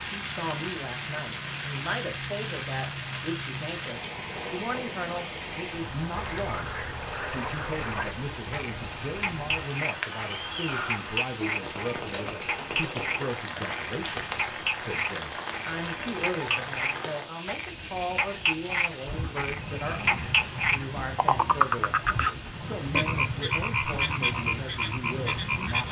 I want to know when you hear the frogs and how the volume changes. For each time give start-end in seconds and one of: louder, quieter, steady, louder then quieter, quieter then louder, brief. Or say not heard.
6.2-25.8 louder.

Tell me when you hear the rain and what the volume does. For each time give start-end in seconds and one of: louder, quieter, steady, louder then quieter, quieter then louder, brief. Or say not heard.
0.0-25.8 steady.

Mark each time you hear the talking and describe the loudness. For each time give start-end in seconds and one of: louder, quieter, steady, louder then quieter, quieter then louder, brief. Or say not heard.
0.0-25.8 steady.